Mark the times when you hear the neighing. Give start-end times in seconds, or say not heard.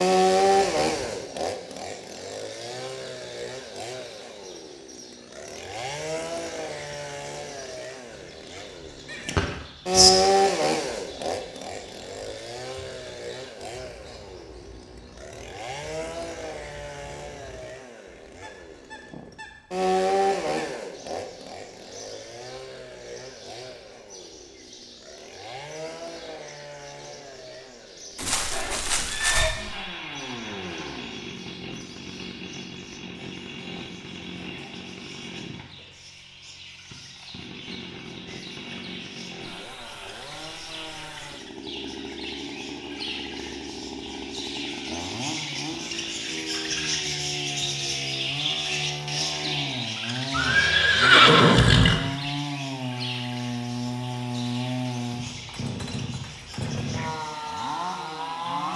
9.1-10.1, 28.1-29.6, 50.3-52.0.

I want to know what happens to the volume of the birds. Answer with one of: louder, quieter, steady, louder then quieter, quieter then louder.
louder.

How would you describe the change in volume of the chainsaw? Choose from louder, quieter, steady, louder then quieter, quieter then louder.
quieter then louder.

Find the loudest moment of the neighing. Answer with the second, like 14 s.
51 s.